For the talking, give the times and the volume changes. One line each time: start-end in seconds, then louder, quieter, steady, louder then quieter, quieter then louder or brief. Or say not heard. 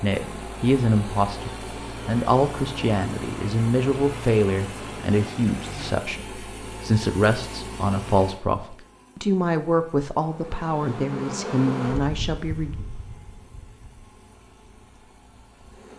0.0-12.7 steady.